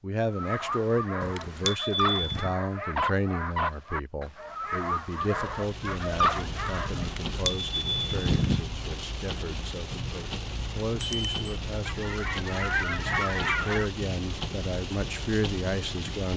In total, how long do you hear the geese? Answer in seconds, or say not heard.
2 s.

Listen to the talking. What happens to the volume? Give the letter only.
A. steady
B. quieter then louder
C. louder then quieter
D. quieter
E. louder
B.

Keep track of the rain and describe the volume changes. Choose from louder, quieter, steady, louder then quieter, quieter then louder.
steady.